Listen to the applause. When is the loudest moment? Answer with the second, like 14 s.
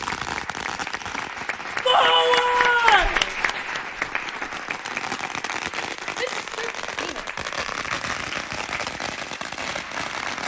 3 s.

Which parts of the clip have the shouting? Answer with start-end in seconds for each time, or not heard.
1.9-3.2, 6.2-7.3.